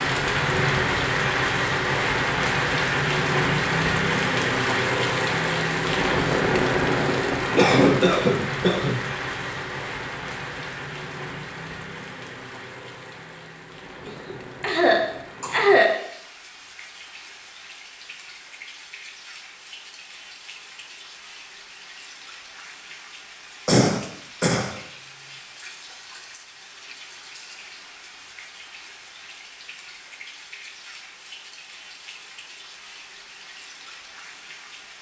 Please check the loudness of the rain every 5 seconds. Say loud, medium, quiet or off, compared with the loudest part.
loud, loud, quiet, quiet, quiet, quiet, quiet.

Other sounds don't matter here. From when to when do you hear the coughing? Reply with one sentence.
The coughing can be heard from 7.5 to 8.9 s, from 14.1 to 15.9 s and from 23.6 to 24.7 s.